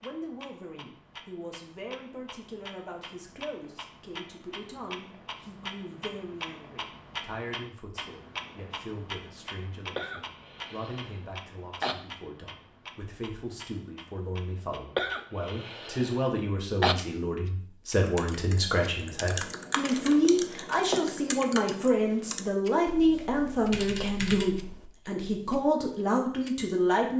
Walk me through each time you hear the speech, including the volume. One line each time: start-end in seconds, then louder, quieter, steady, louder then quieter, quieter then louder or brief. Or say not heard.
0.0-27.1 louder.